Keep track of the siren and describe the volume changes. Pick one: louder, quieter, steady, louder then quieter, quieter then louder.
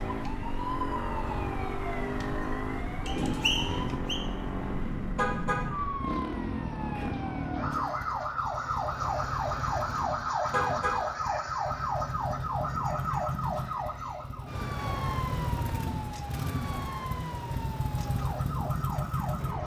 louder then quieter.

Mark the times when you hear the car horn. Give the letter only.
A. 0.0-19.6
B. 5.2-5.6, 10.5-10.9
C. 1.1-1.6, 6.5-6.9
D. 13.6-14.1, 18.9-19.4
B.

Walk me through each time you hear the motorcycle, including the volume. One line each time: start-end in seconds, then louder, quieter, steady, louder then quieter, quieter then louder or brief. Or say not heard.
0.0-19.6 quieter then louder.